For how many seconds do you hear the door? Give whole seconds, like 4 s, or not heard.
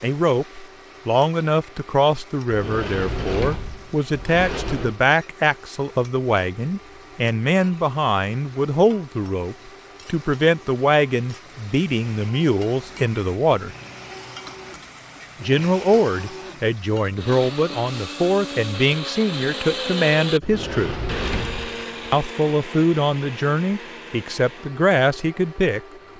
4 s.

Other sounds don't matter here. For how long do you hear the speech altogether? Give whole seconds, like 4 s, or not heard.
23 s.